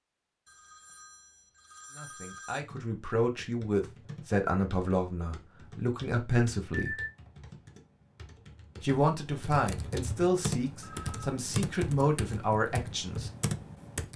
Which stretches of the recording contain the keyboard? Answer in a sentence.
The keyboard can be heard from 2.6 to 14.1 s.